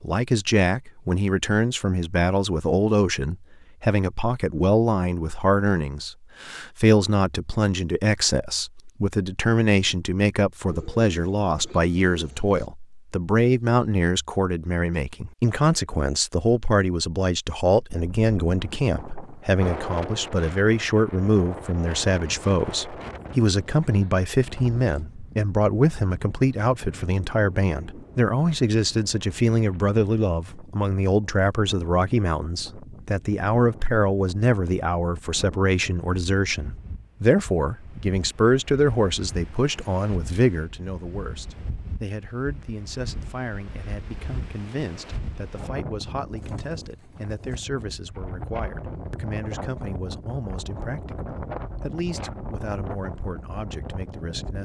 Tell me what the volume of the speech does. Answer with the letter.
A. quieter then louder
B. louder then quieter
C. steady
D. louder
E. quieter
E.